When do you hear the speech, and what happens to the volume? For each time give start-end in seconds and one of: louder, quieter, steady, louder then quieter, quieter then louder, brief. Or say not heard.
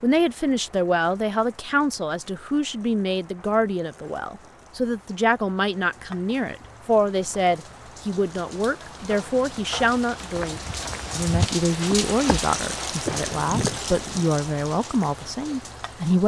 0.0-16.2 steady.